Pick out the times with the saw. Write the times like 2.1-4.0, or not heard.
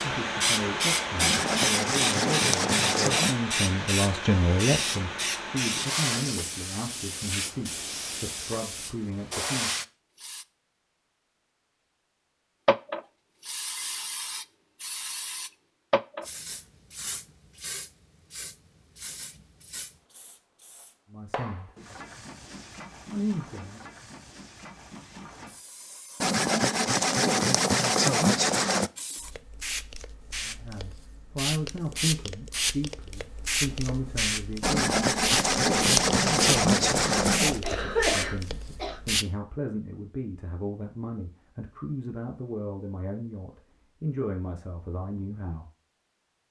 1.1-3.4, 26.2-28.9, 34.6-37.6.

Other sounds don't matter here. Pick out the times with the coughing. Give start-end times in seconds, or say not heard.
37.6-39.0.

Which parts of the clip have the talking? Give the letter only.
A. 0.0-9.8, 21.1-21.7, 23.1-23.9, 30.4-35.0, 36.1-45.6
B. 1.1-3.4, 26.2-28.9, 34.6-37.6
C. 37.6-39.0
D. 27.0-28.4
A.